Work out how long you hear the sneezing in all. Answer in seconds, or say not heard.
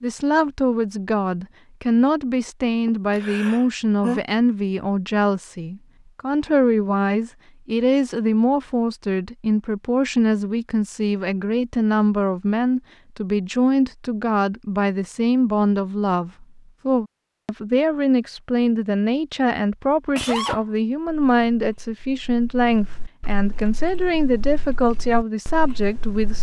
2 s.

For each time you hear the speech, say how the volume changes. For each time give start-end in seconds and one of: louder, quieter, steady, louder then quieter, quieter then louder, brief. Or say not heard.
0.0-26.3 steady.